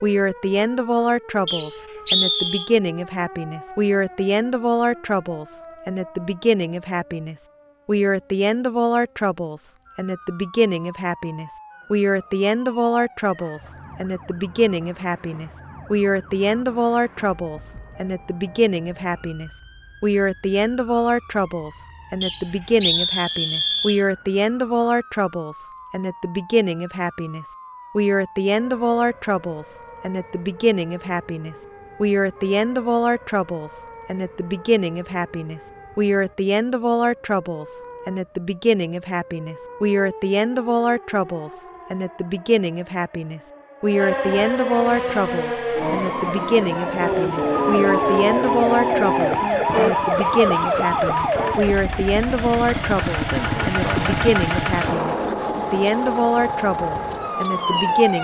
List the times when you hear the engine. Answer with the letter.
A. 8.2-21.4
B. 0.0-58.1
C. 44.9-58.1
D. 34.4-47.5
C.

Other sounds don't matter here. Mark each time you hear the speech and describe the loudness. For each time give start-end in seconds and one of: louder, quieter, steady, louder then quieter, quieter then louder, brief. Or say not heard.
0.0-58.1 steady.